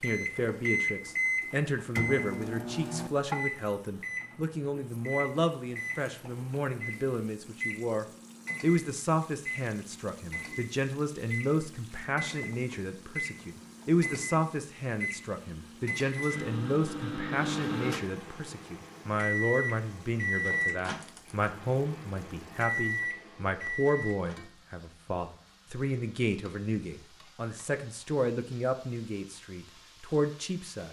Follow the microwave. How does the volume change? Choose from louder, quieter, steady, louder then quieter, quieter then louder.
quieter then louder.